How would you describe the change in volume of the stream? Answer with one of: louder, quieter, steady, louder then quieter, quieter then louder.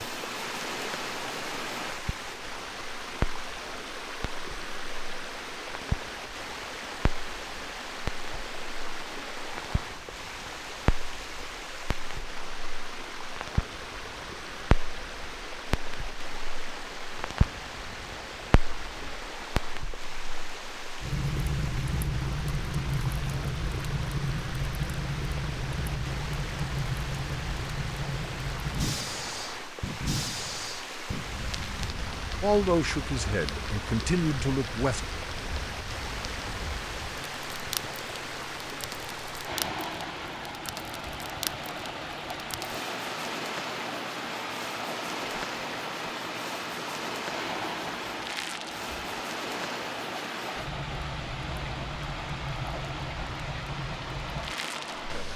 steady.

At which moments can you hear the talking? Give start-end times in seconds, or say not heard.
32.4-35.0.